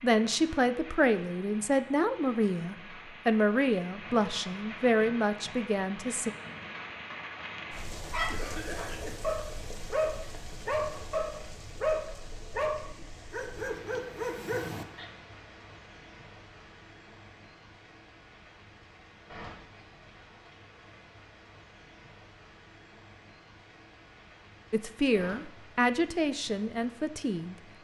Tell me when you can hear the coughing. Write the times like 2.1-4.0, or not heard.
8.2-9.2.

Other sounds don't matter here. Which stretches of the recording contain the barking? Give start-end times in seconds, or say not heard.
8.1-15.1.